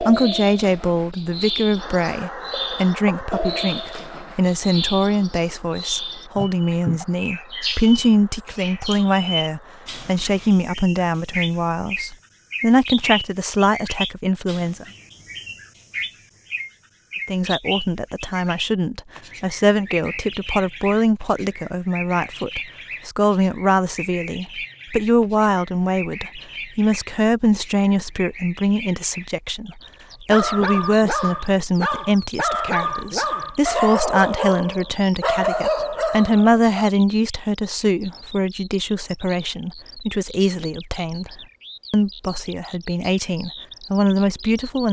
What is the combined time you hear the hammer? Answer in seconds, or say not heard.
not heard.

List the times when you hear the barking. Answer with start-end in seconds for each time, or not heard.
30.3-36.9.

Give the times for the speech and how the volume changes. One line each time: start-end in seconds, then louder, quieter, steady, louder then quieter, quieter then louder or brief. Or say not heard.
0.0-14.8 steady
17.2-44.8 steady.